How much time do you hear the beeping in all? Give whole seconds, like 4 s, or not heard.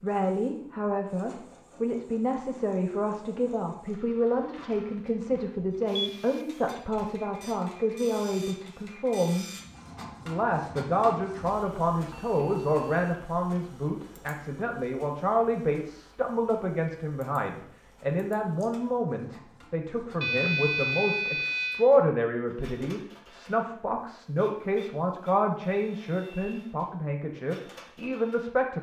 3 s.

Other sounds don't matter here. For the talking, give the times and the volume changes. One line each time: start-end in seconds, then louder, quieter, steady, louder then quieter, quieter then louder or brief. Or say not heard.
0.0-9.5 steady
10.2-28.7 steady.